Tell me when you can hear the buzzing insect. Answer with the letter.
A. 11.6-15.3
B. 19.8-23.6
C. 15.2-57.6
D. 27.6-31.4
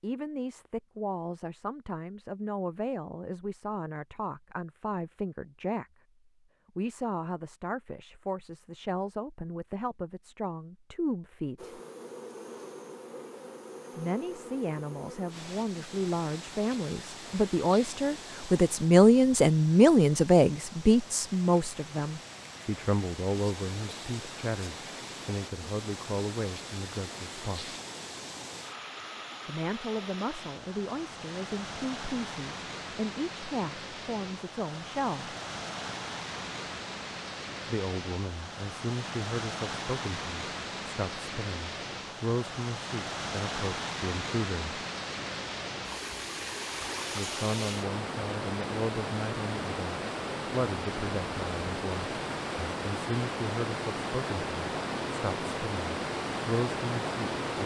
A.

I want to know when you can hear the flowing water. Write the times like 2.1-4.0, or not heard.
15.2-57.6.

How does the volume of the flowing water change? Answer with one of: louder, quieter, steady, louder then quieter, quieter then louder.
louder.